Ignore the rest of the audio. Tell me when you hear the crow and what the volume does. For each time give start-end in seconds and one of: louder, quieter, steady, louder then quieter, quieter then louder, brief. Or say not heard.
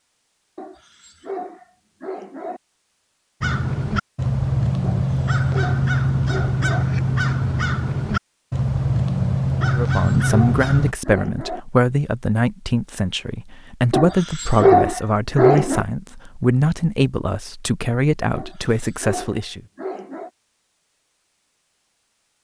3.4-10.9 steady.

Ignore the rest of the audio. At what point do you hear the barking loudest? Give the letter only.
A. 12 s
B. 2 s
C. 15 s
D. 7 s
C.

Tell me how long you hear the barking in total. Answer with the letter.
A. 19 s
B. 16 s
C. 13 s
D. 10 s
D.